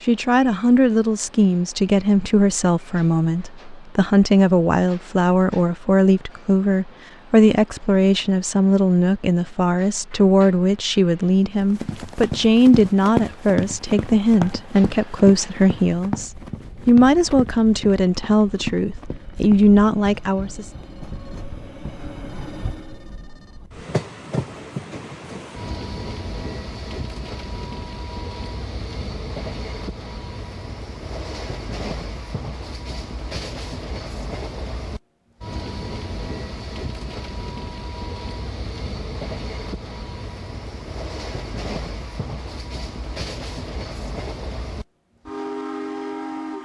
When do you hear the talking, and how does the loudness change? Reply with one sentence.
You can hear the talking from 0.1 to 20.7 s, at a steady volume.